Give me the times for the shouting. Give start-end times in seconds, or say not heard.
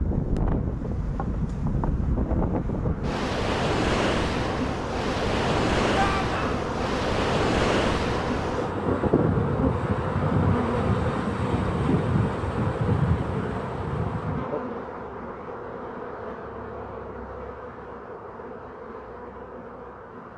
6.0-6.6.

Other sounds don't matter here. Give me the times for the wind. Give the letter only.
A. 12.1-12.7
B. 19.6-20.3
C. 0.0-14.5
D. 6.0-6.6
C.